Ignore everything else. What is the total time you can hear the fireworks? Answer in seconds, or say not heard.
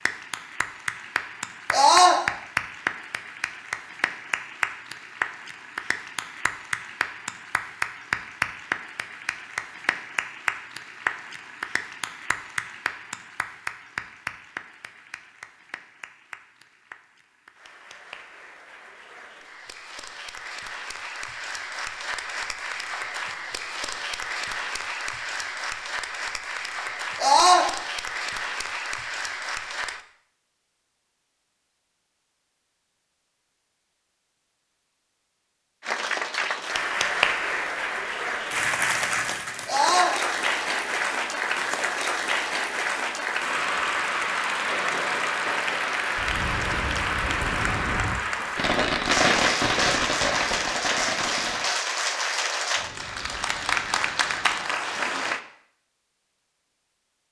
7 s.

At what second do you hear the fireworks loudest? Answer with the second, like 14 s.
49 s.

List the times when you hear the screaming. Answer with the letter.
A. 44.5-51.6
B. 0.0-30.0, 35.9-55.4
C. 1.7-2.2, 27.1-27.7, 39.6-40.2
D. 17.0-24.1
C.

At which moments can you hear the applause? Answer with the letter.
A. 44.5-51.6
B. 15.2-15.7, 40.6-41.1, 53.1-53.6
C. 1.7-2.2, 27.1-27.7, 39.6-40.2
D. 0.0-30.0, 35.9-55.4
D.